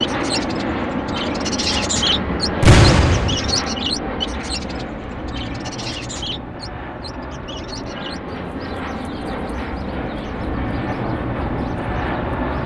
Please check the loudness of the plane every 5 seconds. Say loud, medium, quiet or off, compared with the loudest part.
loud, medium, loud.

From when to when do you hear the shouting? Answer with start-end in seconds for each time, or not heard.
not heard.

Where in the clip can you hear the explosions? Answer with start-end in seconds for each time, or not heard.
2.6-3.6.